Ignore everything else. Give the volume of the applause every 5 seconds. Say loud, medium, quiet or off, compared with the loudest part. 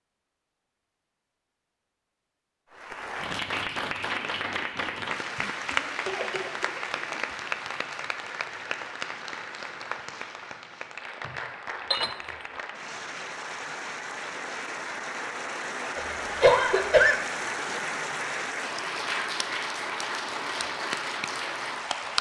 loud, loud, medium, loud, loud.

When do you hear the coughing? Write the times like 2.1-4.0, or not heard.
5.7-7.2, 15.9-17.1.